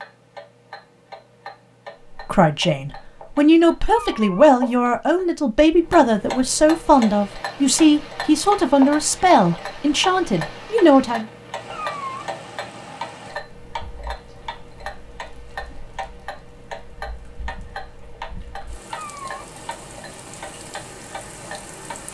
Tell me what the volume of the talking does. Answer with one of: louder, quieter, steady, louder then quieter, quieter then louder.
steady.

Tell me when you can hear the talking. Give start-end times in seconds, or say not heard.
2.1-11.2.